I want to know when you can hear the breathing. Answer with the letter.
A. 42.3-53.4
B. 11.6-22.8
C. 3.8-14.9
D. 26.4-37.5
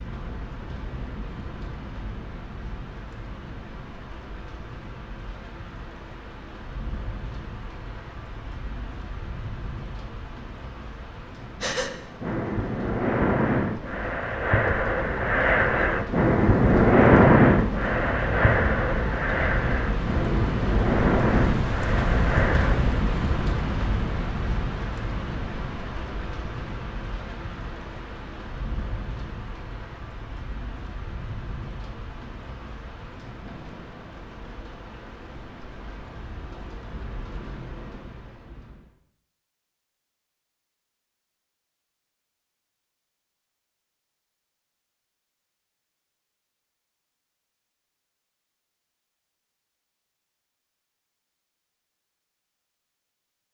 B.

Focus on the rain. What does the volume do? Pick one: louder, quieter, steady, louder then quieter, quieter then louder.
louder then quieter.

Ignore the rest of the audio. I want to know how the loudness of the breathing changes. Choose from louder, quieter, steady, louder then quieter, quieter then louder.
louder then quieter.